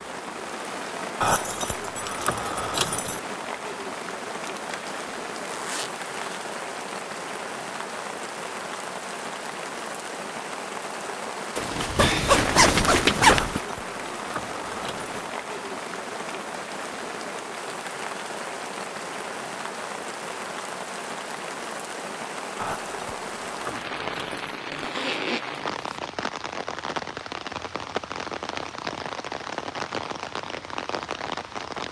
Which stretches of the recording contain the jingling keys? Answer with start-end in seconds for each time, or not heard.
1.2-3.2, 13.2-15.2, 22.6-24.6.